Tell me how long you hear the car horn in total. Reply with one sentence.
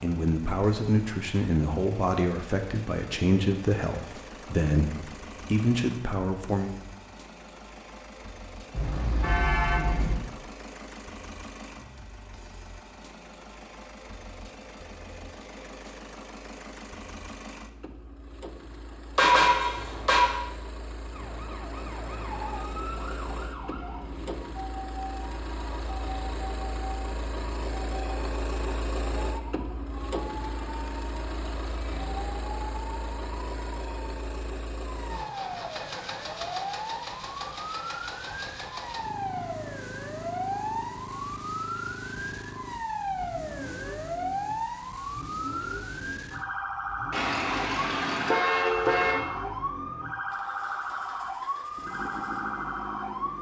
You can hear the car horn for 5 seconds altogether.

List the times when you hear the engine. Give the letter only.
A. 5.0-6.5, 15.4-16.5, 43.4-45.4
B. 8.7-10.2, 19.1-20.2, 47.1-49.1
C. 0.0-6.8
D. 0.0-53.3
D.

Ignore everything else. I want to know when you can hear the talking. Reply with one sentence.
You can hear the talking from 0.0 to 6.8 s.